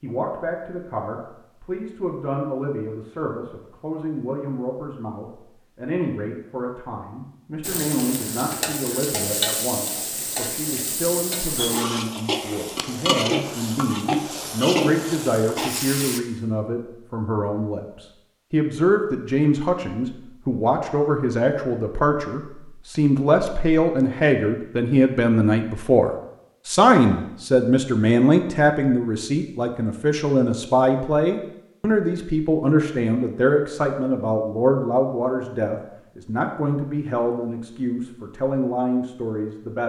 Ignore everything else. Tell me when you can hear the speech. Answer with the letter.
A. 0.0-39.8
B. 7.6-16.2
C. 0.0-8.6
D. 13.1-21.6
A.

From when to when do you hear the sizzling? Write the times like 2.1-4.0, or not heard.
7.6-16.2.